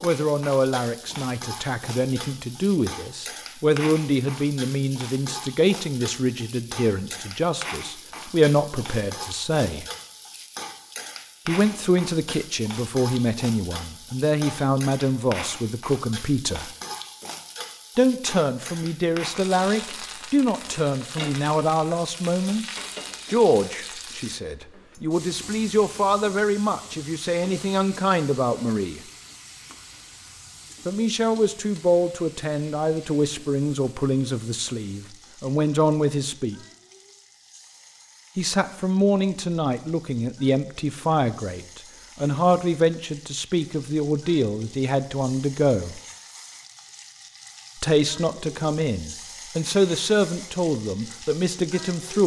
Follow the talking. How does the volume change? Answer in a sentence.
The loudness of the talking stays about the same.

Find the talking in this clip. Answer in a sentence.
The talking can be heard from 0.0 to 9.8 s, from 11.4 to 16.7 s, from 17.9 to 29.0 s, from 30.9 to 36.6 s, from 38.4 to 46.0 s and from 47.8 to 52.2 s.